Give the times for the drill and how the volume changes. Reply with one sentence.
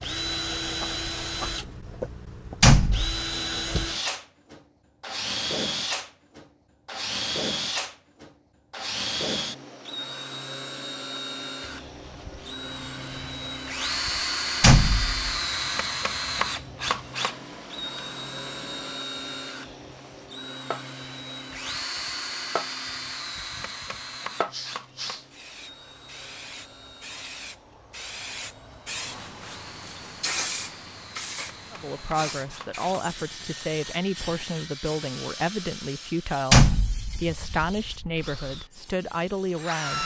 The drill can be heard from 0.0 to 40.0 s, getting quieter.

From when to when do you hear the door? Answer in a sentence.
You can hear the door from 2.6 to 3.2 s, from 14.6 to 15.2 s and from 36.5 to 37.2 s.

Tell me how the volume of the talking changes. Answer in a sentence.
The volume of the talking stays about the same.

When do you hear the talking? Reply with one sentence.
You can hear the talking from 31.7 to 40.0 s.